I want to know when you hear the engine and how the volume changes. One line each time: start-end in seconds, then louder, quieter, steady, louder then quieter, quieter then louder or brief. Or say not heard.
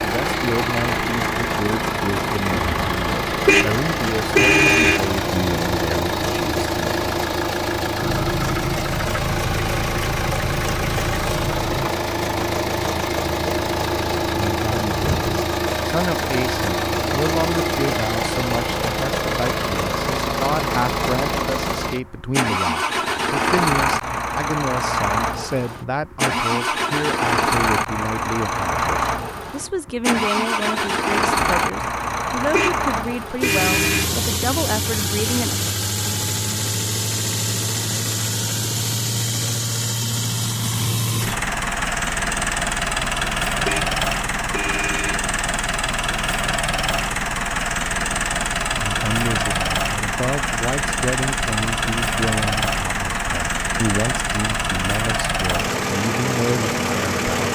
0.0-57.5 steady.